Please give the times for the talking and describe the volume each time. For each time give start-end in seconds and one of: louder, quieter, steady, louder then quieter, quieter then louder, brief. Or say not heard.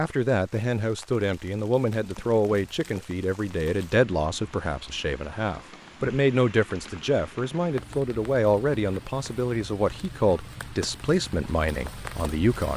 0.0-12.7 steady.